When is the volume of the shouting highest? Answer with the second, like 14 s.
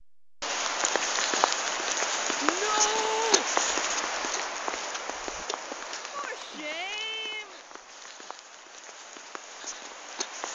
3 s.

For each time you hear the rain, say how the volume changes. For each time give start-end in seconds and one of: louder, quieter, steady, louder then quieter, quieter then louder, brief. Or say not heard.
0.2-10.5 quieter.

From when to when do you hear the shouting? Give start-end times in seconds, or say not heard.
2.4-3.5, 6.1-7.6.